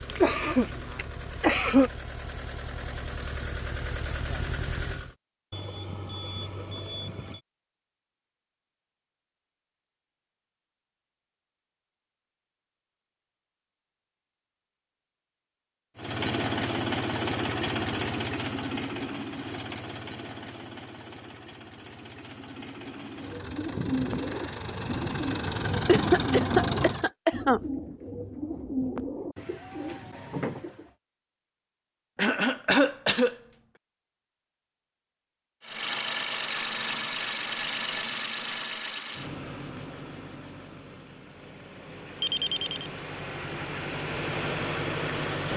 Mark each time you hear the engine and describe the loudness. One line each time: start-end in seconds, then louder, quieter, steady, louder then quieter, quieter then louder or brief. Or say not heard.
0.0-5.2 louder
15.9-27.1 quieter then louder
35.6-45.5 quieter then louder.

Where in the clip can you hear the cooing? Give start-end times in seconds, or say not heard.
23.1-30.9.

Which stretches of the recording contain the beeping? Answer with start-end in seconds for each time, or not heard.
5.5-7.4, 42.2-42.9.